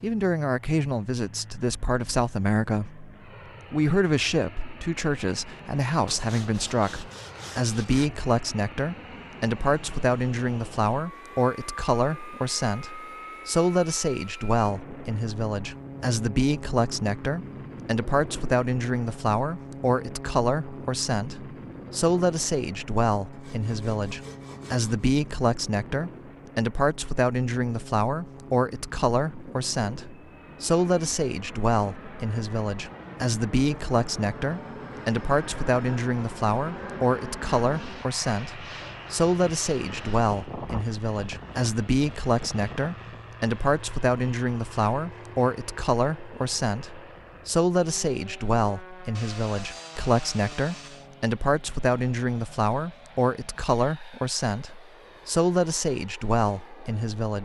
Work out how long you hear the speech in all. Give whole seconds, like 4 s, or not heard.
57 s.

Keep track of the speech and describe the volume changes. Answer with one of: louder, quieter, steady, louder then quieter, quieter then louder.
steady.